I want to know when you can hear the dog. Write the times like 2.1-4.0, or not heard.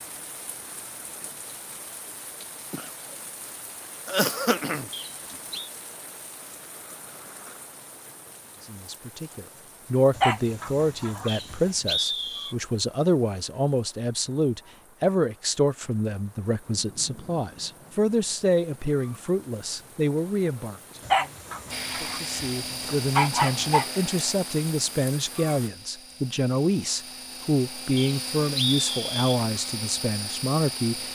10.2-11.7, 21.1-23.9.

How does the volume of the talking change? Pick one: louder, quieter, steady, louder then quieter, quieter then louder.
steady.